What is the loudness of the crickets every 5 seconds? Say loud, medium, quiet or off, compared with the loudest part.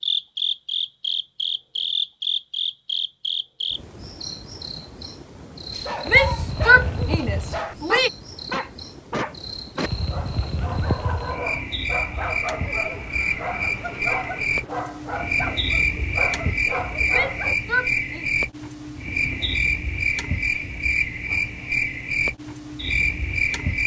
loud, medium, loud, loud, loud.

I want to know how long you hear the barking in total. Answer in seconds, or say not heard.
12 s.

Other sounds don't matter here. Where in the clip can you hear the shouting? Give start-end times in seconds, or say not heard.
6.0-8.1, 17.1-18.2.